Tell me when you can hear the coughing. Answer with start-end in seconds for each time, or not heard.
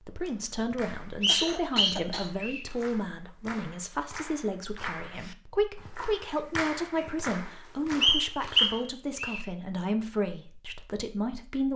0.2-2.3.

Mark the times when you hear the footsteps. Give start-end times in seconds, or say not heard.
not heard.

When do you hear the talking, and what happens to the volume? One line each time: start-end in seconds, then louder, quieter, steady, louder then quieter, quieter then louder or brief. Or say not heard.
0.0-11.7 steady.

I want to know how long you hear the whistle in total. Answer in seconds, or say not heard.
3 s.